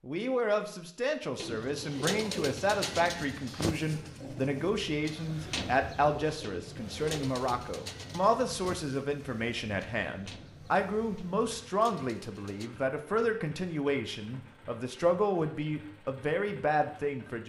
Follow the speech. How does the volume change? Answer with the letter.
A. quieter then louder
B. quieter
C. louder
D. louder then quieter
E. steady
E.